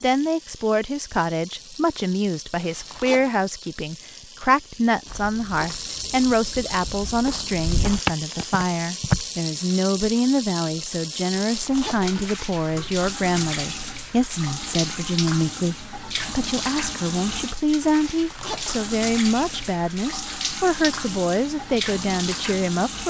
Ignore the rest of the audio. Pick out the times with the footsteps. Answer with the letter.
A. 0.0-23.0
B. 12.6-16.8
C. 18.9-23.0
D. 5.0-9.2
D.